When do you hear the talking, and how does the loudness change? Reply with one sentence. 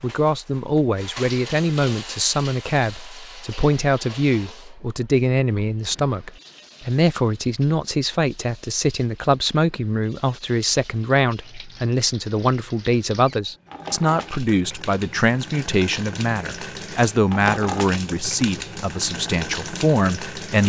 You can hear the talking from 0.0 to 20.6 s, at a steady volume.